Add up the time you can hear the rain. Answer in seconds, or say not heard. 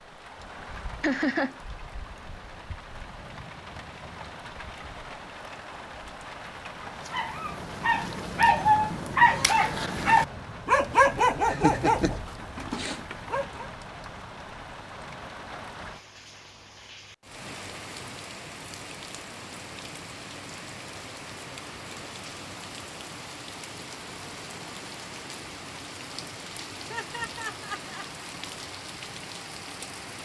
30 s.